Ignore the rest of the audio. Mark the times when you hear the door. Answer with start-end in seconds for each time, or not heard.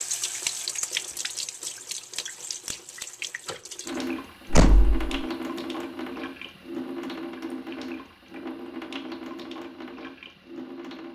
4.5-5.2.